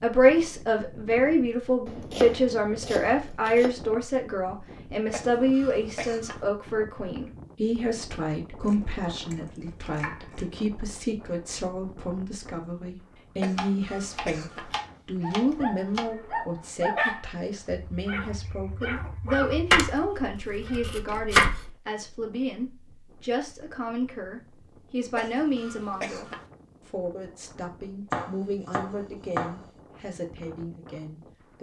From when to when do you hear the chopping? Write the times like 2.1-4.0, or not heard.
1.9-3.7, 8.6-10.6, 13.6-16.1, 19.7-21.7, 28.1-29.6.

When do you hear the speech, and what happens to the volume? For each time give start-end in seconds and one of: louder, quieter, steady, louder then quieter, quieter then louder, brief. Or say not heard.
0.0-31.5 quieter.